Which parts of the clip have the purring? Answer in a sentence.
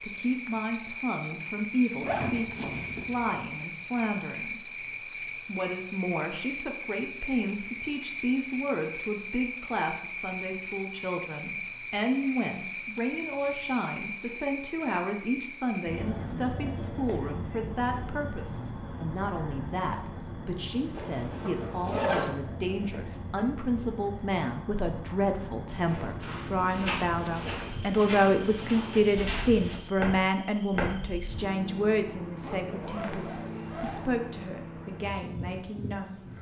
The purring can't be heard in this clip.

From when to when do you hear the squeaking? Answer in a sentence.
You can hear the squeaking from 13.4 to 13.8 s and from 21.9 to 22.3 s.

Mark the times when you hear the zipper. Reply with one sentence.
You can hear the zipper from 2.0 to 3.4 s, from 20.9 to 22.3 s and from 32.4 to 34.0 s.